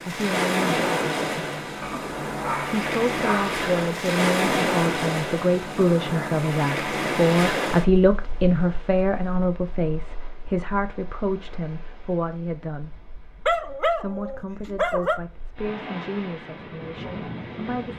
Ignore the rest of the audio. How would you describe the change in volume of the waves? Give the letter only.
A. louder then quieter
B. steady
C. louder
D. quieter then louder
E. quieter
D.